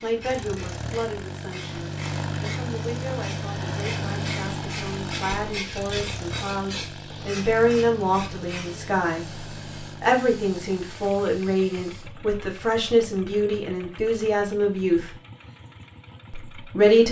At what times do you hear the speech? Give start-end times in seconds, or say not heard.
0.0-15.2, 16.3-17.0.